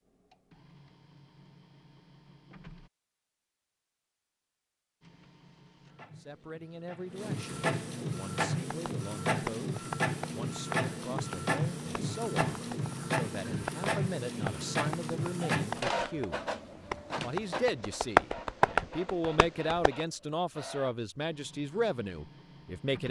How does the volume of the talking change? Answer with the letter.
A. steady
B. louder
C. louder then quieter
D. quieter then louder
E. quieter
B.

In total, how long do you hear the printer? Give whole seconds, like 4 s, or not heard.
21 s.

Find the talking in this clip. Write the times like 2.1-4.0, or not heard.
6.2-16.4, 17.2-23.0.